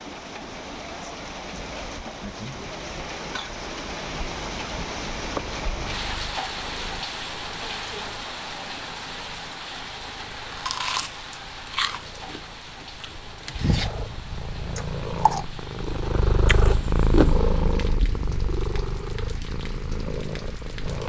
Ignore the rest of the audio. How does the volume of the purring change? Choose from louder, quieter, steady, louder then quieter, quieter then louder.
louder then quieter.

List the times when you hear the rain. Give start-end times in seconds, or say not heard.
0.0-21.0.